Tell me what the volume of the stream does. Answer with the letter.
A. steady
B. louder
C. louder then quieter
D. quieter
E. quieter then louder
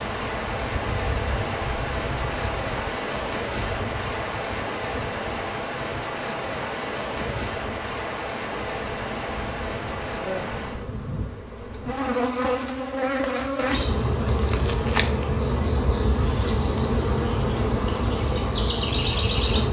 A.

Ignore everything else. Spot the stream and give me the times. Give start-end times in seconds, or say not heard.
0.0-10.8.